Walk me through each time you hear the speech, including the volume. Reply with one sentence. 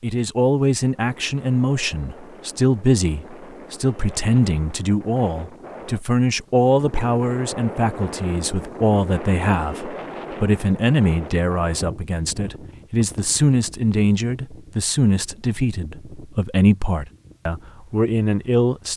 You can hear the speech from 0.0 to 18.9 s, at a steady volume.